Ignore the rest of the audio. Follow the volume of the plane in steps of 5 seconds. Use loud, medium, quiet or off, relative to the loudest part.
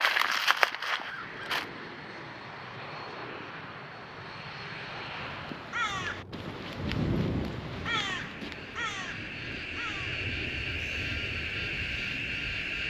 medium, medium, loud.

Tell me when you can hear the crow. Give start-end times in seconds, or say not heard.
0.0-1.7, 5.2-12.8.